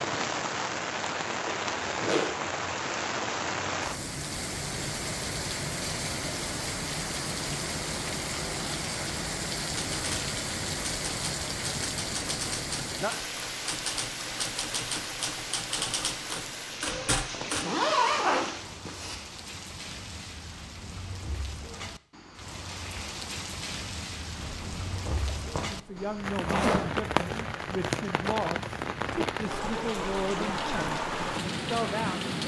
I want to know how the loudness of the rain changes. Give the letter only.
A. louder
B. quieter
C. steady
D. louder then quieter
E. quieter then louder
E.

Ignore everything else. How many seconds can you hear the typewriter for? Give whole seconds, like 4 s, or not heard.
8 s.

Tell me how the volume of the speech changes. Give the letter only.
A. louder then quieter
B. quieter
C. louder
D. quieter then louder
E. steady
E.